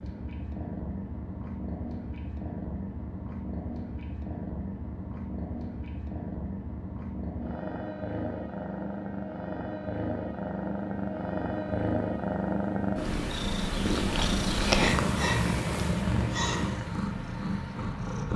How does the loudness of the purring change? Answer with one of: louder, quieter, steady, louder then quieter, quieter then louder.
louder.